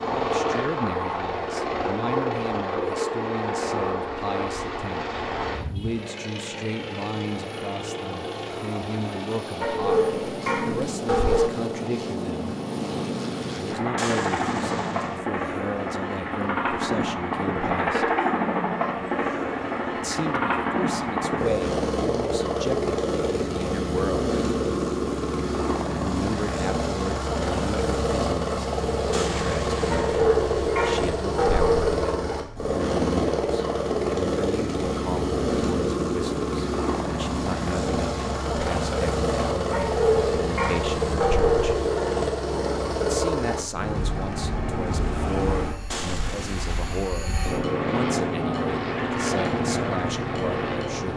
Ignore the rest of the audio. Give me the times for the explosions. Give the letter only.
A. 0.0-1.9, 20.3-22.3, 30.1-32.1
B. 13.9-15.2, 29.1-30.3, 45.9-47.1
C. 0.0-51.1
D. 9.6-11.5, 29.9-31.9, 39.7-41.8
B.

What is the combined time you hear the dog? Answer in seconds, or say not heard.
6 s.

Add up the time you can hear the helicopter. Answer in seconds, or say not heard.
51 s.